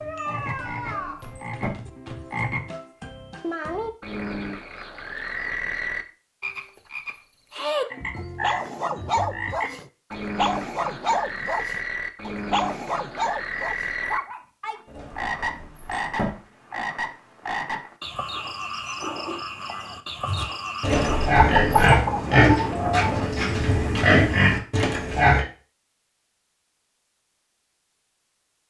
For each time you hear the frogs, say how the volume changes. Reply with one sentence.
The frogs can be heard from 0.0 to 21.3 s, at a steady volume.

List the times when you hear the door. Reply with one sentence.
You can hear the door from 0.3 to 1.8 s, from 14.8 to 16.3 s and from 20.8 to 21.8 s.